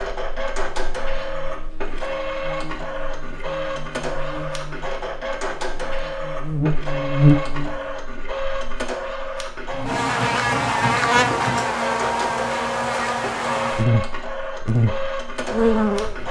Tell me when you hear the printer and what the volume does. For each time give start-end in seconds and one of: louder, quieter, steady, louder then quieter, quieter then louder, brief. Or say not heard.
0.0-16.2 steady.